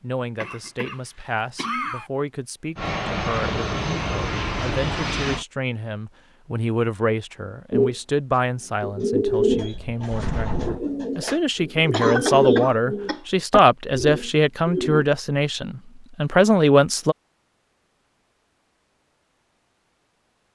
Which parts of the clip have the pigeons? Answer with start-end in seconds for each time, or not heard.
7.7-15.1.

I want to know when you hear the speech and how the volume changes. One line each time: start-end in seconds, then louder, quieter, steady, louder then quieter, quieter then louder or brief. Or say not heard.
0.0-17.1 louder.